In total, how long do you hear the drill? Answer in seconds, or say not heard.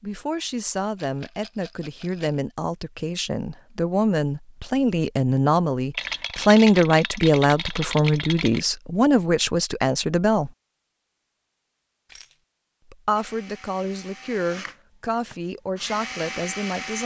4 s.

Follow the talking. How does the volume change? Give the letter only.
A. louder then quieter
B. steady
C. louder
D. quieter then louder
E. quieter
A.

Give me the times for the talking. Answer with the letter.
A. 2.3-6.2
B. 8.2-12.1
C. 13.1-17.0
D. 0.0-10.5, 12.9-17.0
D.